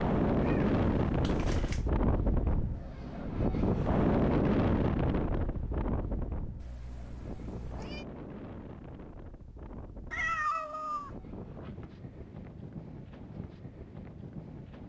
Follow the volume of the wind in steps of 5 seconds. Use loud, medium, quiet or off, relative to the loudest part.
loud, medium, quiet.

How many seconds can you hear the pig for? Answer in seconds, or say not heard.
not heard.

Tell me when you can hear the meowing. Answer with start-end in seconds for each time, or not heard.
0.4-1.9, 6.5-8.1, 10.1-11.1.